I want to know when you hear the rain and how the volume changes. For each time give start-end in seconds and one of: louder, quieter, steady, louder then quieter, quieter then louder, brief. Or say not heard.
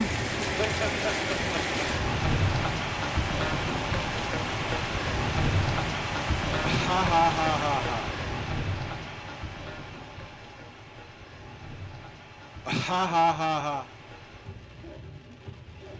0.0-15.9 quieter.